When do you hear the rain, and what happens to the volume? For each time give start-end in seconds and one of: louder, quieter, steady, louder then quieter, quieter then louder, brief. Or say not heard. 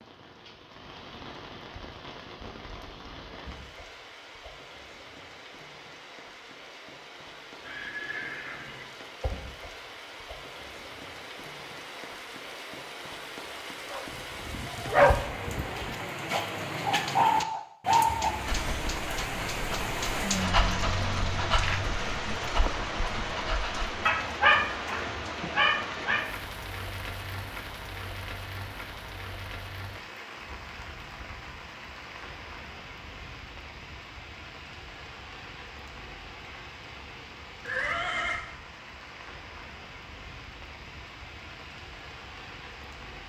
0.0-43.2 louder then quieter.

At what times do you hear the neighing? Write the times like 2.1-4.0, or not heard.
7.6-8.9, 18.1-18.9, 37.6-38.4.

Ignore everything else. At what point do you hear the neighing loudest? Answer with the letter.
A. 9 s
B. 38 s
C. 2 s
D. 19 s
B.